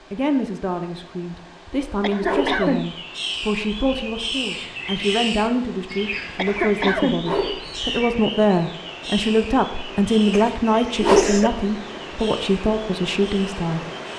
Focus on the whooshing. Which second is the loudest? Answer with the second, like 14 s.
11 s.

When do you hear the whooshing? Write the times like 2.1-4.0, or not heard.
2.2-2.6, 7.2-7.8, 11.0-11.5.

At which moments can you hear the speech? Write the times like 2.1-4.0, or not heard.
0.1-13.8.